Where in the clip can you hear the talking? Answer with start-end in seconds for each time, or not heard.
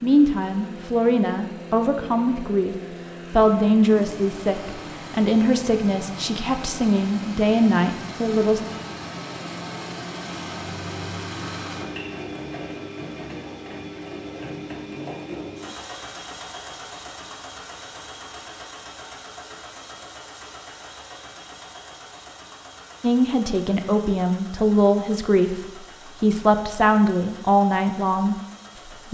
0.0-8.6, 23.0-29.0.